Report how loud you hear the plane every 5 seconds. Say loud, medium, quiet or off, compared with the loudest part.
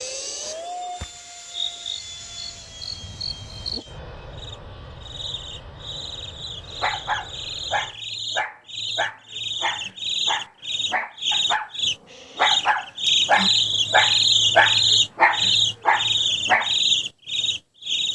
loud, medium, off, off.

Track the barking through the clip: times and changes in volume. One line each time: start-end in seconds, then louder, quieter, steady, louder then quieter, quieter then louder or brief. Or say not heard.
6.7-16.7 louder.